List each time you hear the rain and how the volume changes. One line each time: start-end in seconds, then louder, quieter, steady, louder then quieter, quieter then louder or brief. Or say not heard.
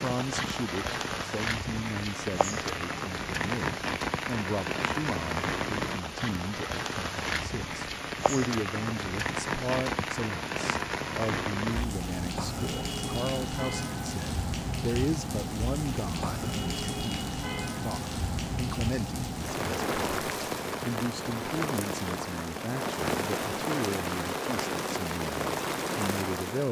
0.0-26.6 steady.